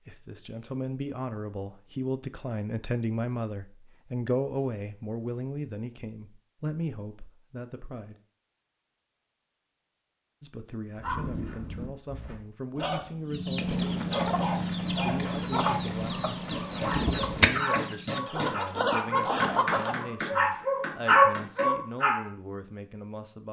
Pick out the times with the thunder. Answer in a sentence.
The thunder can be heard from 13.7 to 17.5 s.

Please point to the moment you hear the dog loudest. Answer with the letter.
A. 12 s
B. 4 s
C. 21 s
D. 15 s
C.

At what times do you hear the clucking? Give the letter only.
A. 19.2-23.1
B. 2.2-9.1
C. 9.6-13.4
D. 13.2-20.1
D.